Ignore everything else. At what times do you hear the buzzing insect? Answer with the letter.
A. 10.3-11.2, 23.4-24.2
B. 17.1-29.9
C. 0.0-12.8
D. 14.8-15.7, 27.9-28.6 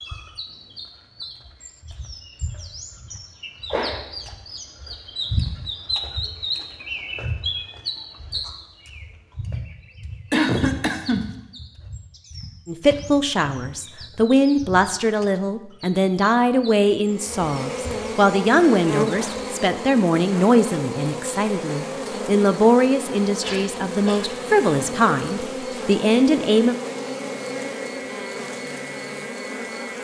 B.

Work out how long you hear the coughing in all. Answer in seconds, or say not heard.
2 s.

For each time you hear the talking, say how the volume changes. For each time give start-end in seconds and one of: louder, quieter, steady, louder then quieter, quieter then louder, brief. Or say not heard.
12.7-26.8 steady.